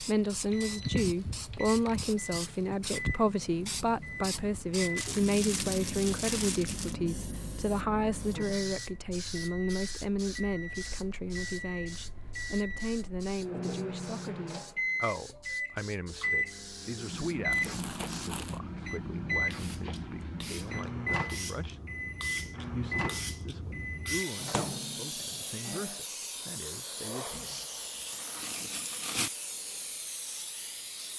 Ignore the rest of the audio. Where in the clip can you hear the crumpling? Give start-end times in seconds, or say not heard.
5.0-7.0, 17.5-18.6, 27.3-29.3.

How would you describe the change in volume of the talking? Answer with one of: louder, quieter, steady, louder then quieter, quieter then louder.
quieter.